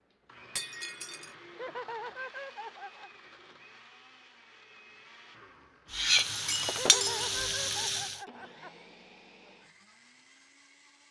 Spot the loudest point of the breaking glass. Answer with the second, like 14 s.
7 s.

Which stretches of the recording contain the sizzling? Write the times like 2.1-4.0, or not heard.
5.9-8.2.